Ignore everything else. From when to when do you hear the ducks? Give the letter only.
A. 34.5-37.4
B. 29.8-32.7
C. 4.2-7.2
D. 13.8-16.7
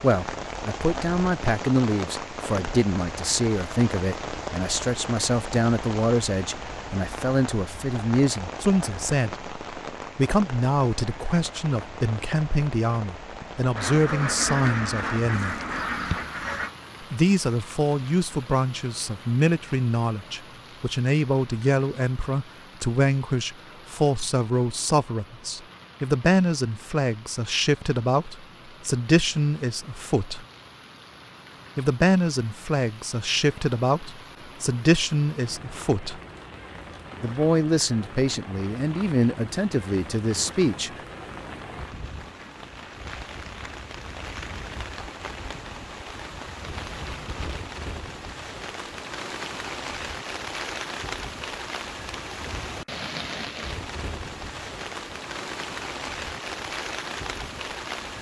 D.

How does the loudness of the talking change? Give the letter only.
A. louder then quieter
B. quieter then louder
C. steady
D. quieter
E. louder
C.